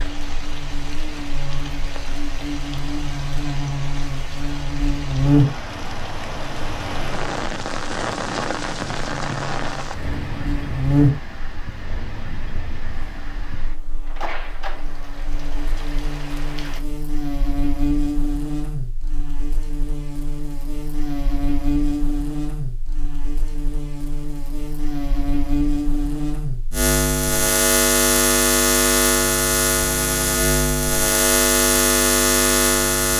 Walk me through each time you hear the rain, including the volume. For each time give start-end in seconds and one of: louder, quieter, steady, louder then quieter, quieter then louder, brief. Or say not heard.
0.0-16.8 louder then quieter.